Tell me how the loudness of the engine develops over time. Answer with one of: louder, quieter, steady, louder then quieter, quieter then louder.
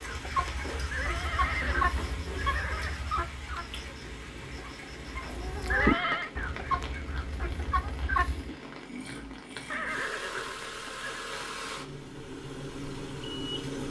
louder.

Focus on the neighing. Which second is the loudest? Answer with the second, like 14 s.
6 s.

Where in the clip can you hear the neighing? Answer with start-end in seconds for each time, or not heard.
0.9-2.9, 5.7-6.3, 9.7-11.2.